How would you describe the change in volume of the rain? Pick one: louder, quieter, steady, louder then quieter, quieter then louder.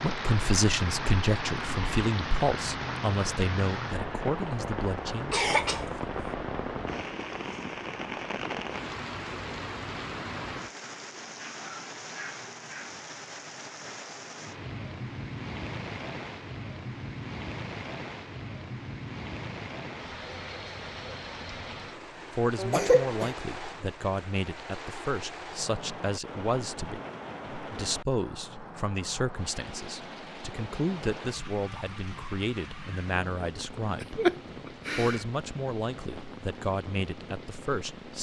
quieter.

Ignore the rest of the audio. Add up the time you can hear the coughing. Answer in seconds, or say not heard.
3 s.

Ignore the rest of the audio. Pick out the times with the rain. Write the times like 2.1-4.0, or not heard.
0.0-38.1.